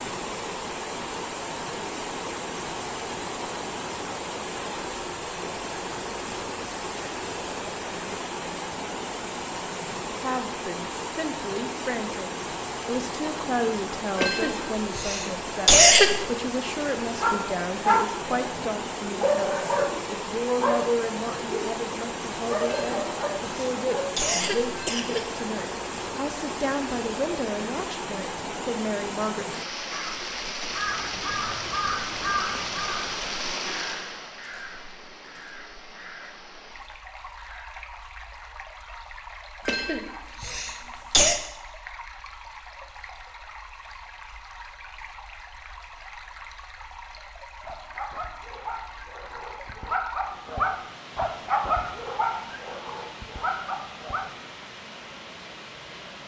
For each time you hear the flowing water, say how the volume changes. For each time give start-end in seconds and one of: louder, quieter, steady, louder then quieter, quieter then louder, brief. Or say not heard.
0.0-56.2 quieter.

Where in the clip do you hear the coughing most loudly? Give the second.
16 s.